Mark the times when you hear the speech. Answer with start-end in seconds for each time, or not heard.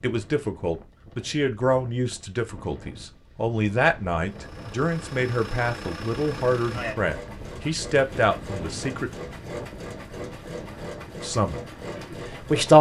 0.0-9.1, 11.2-12.7.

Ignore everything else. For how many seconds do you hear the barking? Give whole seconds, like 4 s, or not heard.
not heard.